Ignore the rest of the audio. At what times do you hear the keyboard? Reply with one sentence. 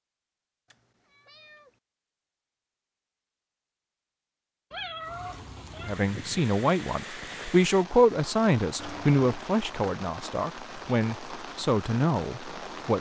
You can't hear the keyboard here.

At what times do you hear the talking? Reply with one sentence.
You can hear the talking from 5.8 to 12.9 s.